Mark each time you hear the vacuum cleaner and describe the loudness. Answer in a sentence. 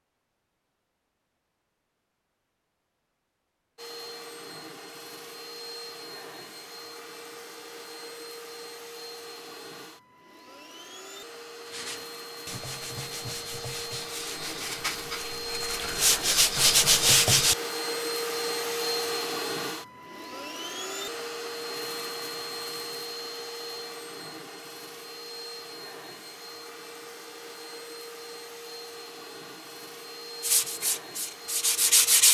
The vacuum cleaner can be heard from 3.8 to 32.2 s, getting louder then quieter.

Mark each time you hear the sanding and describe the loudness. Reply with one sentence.
The sanding can be heard from 11.7 to 17.6 s, getting louder; and briefly from 30.4 to 32.2 s.